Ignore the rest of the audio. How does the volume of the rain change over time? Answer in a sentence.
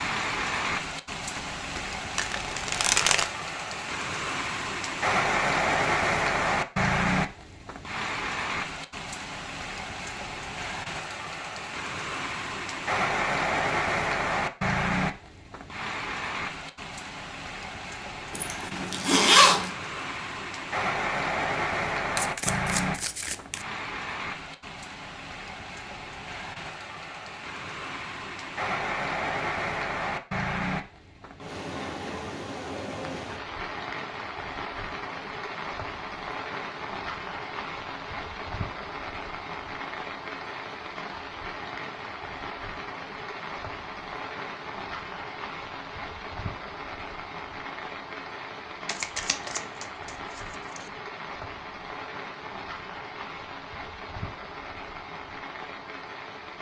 The loudness of the rain goes down.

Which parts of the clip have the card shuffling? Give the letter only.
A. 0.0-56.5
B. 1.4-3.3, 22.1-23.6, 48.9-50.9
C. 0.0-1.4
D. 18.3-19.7
B.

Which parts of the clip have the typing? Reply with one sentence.
You can't hear the typing here.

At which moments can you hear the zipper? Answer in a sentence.
You can hear the zipper from 18.3 to 19.7 s.